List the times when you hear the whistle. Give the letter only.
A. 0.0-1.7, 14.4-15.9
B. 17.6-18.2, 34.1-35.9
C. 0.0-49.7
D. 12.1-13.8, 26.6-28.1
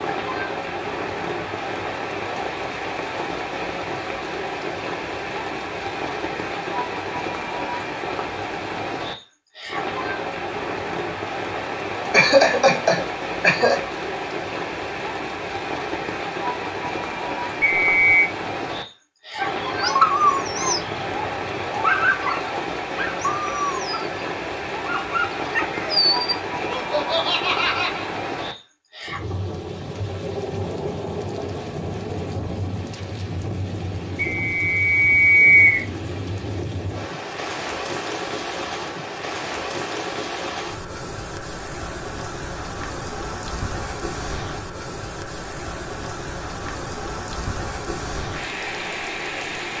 B.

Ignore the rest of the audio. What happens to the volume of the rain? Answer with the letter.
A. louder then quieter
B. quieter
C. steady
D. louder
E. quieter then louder
C.